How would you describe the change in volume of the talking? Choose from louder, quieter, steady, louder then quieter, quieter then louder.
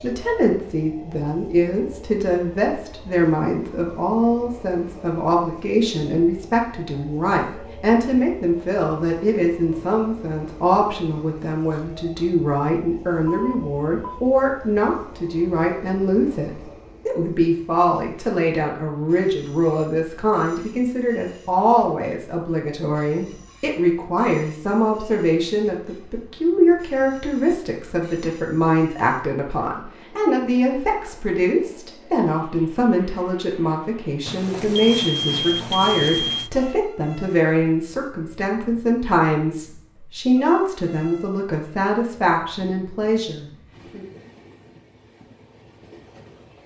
steady.